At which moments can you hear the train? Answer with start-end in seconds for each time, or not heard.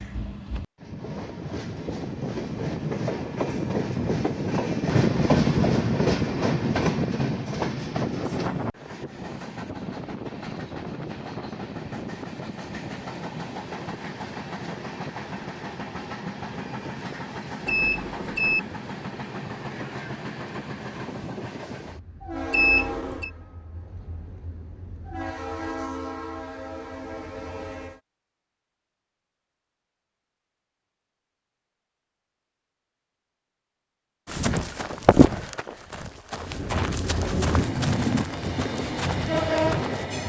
0.0-28.0, 36.4-40.2.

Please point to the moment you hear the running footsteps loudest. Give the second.
35 s.